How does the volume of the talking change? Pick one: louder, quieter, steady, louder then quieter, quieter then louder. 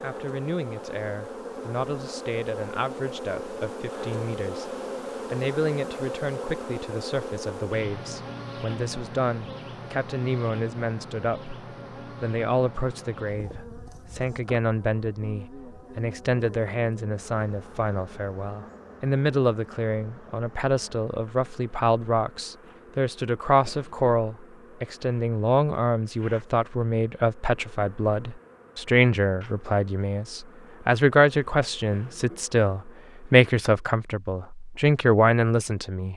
louder.